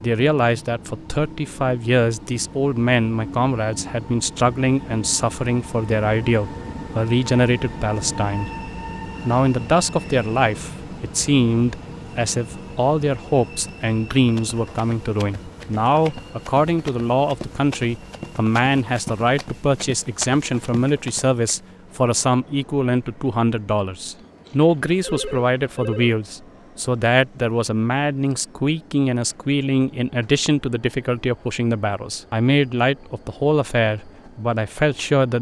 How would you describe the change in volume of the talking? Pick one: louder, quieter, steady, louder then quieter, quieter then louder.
steady.